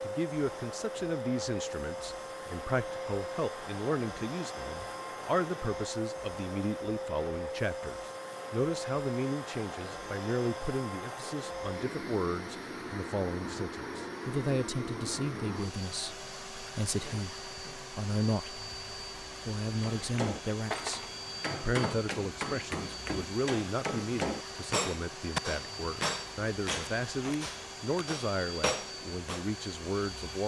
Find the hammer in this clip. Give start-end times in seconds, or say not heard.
19.8-29.4.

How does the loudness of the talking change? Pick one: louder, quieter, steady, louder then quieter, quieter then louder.
steady.